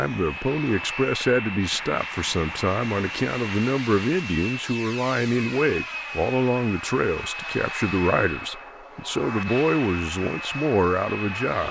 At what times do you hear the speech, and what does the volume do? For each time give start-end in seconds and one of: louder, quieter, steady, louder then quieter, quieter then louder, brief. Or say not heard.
0.0-11.6 steady.